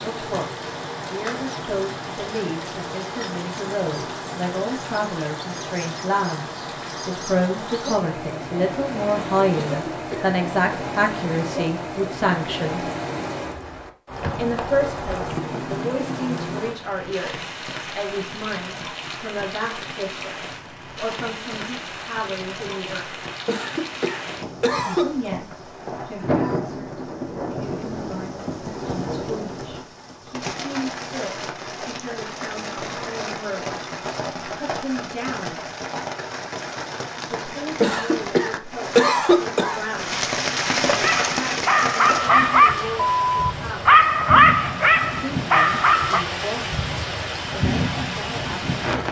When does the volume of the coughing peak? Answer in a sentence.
The volume of the coughing peaks at 39 seconds.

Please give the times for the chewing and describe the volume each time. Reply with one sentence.
The chewing can't be heard in this clip.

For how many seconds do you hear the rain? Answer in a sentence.
The rain can be heard for 49 seconds in total.